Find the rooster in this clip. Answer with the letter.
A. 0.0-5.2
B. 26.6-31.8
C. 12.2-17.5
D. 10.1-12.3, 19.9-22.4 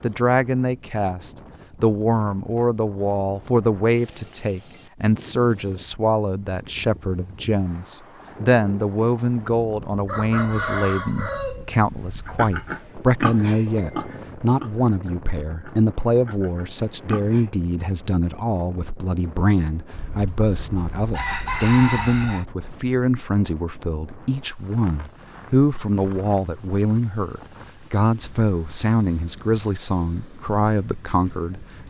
D.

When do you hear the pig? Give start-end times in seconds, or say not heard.
12.2-17.5.